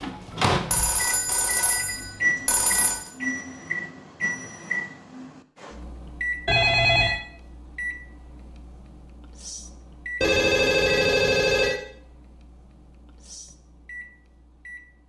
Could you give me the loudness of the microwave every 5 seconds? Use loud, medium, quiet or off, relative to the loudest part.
loud, medium, quiet.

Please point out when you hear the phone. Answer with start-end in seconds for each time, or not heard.
0.7-3.1, 6.5-7.2, 10.2-11.8.